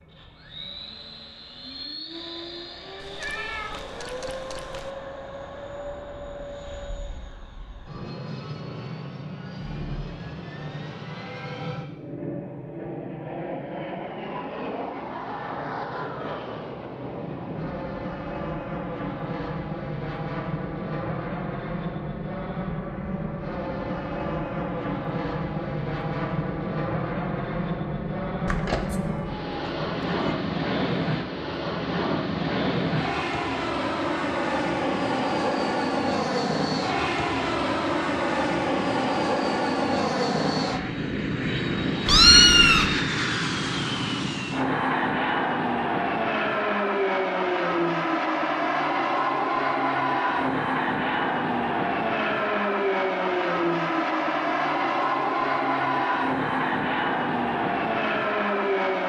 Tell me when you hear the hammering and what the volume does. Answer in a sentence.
You can't hear the hammering here.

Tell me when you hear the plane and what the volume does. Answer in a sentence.
The plane can be heard from 0.0 to 59.0 s, getting louder.